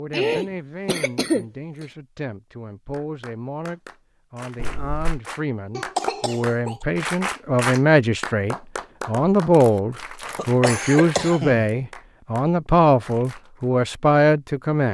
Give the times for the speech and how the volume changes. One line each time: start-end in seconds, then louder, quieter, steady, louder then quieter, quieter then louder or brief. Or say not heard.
0.0-14.9 louder.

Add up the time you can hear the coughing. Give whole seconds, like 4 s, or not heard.
4 s.